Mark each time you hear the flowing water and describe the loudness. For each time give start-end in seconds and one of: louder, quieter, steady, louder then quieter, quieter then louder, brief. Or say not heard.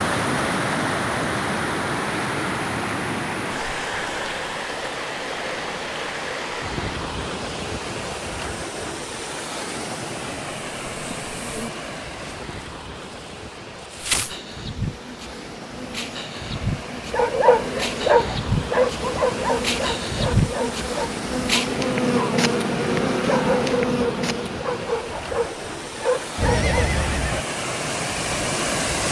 0.0-29.0 quieter then louder.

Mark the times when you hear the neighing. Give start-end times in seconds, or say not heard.
26.4-27.4.